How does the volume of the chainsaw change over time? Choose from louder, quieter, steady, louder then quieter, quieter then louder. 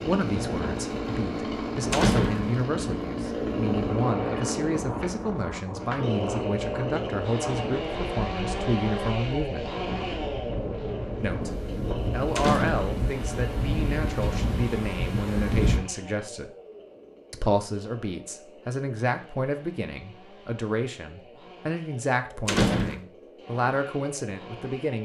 quieter.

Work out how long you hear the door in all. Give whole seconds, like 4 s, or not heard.
2 s.